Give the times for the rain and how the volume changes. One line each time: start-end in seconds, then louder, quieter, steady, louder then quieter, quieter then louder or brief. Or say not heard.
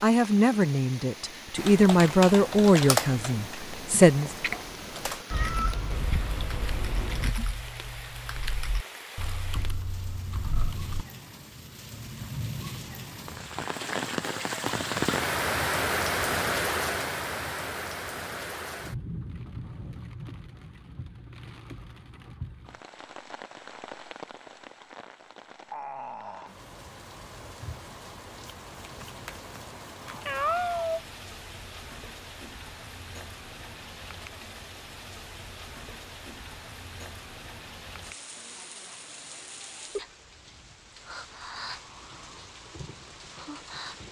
0.0-44.0 louder then quieter.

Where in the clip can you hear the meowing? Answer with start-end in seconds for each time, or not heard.
5.3-7.3, 30.1-31.0.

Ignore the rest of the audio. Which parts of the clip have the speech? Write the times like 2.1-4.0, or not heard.
0.0-4.3.